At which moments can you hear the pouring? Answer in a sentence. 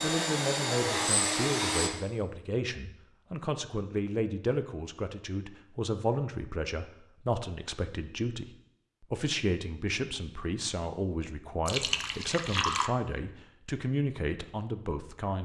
You can hear the pouring from 11.7 to 12.9 s.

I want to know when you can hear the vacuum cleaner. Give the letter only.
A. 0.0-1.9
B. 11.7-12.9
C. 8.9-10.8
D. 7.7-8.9
A.